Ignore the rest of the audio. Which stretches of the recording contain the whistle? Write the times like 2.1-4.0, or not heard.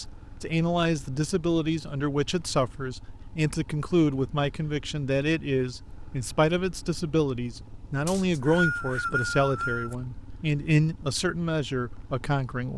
8.1-9.9.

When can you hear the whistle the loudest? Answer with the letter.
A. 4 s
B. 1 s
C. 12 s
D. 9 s
D.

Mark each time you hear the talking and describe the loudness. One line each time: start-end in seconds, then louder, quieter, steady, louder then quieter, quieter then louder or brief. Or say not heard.
0.0-12.7 steady.